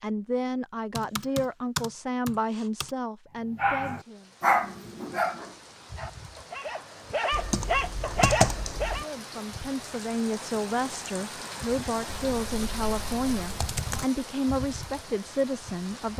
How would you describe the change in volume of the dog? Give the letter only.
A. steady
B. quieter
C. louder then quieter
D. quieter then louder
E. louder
D.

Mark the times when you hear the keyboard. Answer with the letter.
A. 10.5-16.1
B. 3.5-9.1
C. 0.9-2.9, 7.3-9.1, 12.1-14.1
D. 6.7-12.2
C.